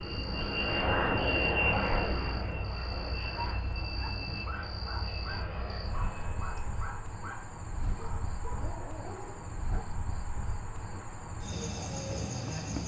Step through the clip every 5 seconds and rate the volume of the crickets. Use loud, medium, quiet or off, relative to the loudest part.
medium, medium, loud.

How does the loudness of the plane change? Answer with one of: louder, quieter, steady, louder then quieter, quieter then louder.
quieter.